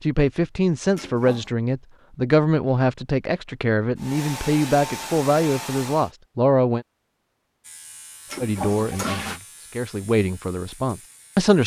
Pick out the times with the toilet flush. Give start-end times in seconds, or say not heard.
0.9-1.5, 8.3-9.4.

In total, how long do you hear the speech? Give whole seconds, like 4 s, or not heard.
10 s.